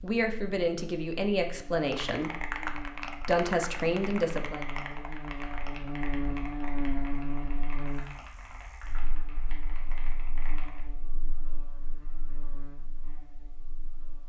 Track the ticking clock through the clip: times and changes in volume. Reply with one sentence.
You can't hear the ticking clock here.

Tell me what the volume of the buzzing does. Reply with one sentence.
The volume of the buzzing goes up, then down.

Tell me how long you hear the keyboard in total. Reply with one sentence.
The keyboard can be heard for 9 seconds in total.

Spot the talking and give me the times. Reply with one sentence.
The talking can be heard from 0.0 to 4.7 s.